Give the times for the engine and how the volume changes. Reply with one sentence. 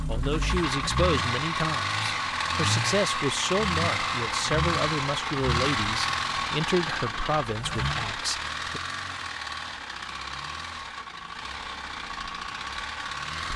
You can hear the engine from 0.0 to 13.5 s, getting quieter.